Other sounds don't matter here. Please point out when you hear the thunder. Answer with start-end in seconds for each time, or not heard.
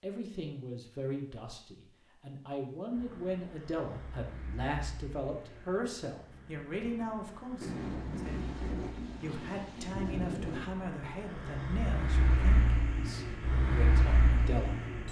7.6-10.7.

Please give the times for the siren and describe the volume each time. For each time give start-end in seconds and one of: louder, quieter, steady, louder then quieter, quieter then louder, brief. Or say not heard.
not heard.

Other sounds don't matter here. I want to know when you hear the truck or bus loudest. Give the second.
14 s.